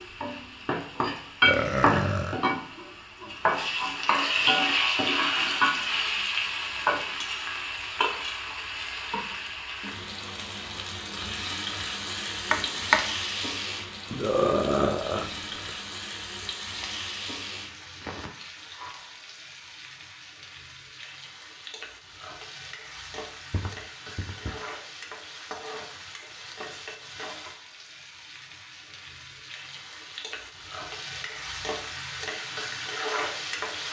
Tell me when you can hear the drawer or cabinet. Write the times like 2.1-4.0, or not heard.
12.5-13.1.